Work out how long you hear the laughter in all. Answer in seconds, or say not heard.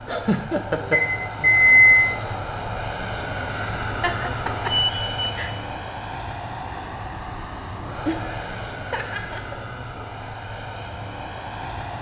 5 s.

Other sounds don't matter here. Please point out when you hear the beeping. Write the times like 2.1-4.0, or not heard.
0.9-1.9, 4.7-5.3, 8.2-10.1.